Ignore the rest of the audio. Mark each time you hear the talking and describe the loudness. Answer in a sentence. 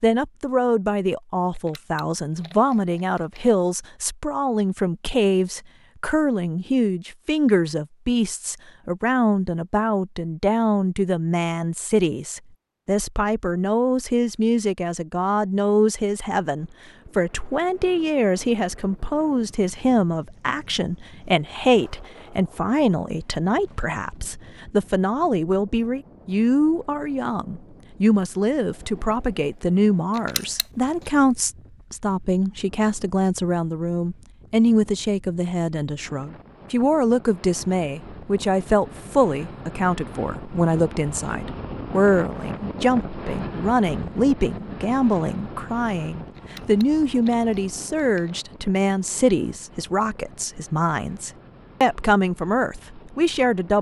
The talking can be heard from 0.0 to 53.7 s, at a steady volume.